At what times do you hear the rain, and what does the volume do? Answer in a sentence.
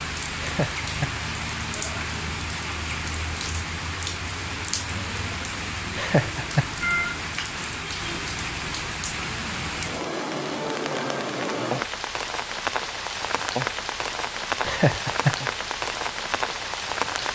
You can hear the rain from 0.0 to 17.2 s, at a steady volume.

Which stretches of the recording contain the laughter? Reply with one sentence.
The laughter can be heard from 0.4 to 1.1 s, from 6.0 to 6.7 s and from 14.7 to 15.3 s.